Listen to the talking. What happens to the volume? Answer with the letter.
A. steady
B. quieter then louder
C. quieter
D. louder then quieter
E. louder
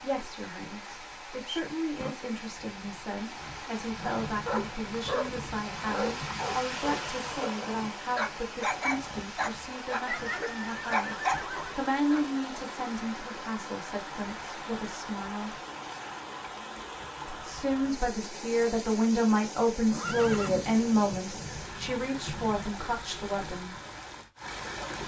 E.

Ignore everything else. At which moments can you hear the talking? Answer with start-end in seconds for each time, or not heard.
0.0-15.5, 17.3-23.8.